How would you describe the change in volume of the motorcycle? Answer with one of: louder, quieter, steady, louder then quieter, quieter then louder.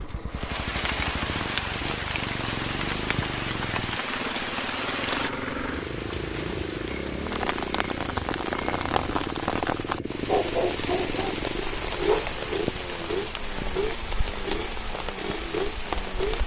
steady.